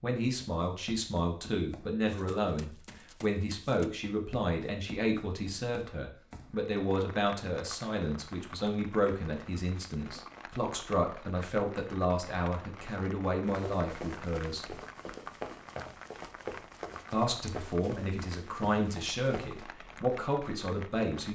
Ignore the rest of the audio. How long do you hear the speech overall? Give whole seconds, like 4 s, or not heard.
19 s.